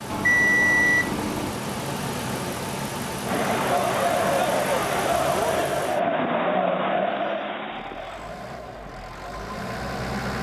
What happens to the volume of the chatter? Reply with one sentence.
The loudness of the chatter goes down.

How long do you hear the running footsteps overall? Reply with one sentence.
You can't hear the running footsteps here.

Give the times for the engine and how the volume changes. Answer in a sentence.
You can hear the engine from 0.0 to 10.3 s, getting quieter.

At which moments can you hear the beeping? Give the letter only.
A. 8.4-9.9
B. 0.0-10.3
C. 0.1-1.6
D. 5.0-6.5
C.